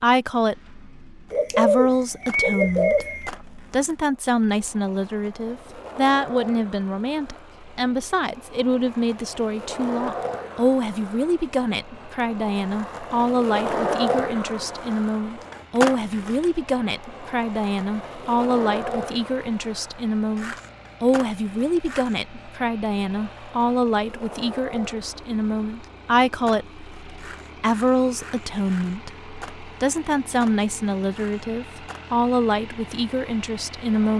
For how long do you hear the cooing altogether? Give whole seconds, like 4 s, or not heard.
2 s.